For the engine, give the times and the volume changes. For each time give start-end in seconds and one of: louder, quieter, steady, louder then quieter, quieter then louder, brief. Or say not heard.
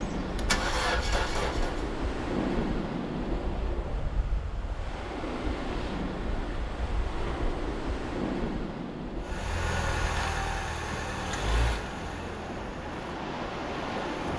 0.0-1.8 brief
9.2-14.3 quieter.